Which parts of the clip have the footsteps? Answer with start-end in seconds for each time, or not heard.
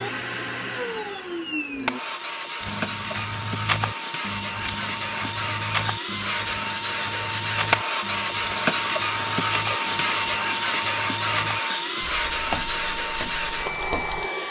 2.6-14.2.